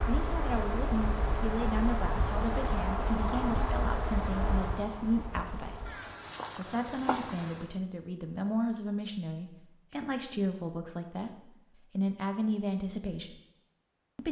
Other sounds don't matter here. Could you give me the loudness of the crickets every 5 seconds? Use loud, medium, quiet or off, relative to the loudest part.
loud, medium, off.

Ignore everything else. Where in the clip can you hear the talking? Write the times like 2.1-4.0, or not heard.
0.1-5.9, 6.5-13.4.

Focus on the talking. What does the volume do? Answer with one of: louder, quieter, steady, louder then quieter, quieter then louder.
steady.